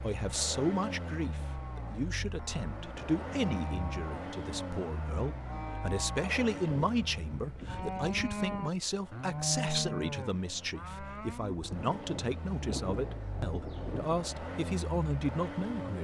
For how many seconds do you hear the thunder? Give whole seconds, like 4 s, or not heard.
3 s.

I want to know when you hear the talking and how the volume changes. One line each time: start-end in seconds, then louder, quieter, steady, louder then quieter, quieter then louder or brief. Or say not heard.
0.0-16.0 steady.